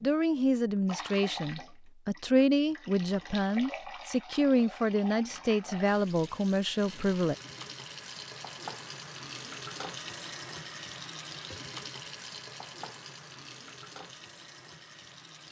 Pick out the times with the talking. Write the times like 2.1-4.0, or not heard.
0.0-7.3.